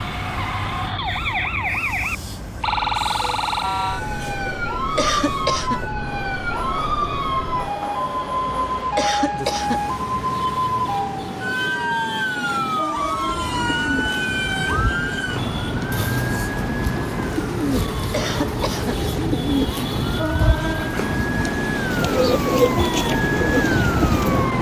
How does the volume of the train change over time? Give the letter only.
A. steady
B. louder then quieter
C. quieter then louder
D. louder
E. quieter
D.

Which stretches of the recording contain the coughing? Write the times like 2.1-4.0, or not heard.
5.0-5.8, 8.9-9.8, 18.1-18.9.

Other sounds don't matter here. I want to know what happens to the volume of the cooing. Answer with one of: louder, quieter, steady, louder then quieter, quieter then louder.
louder.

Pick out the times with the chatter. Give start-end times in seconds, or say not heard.
not heard.